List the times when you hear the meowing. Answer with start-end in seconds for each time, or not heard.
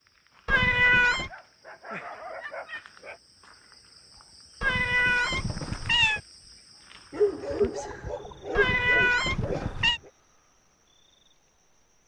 0.5-1.3, 4.6-6.2, 8.6-10.0.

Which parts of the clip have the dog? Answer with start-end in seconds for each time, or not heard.
1.1-3.2, 7.1-10.1.